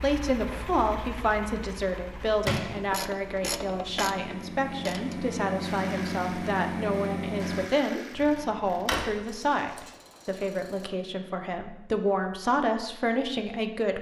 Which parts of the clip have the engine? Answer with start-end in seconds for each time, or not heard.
0.0-7.7.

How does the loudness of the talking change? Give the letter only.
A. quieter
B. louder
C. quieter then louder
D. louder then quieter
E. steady
E.